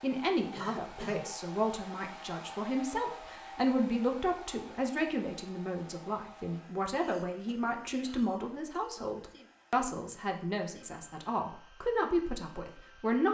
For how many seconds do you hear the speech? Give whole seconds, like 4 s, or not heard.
13 s.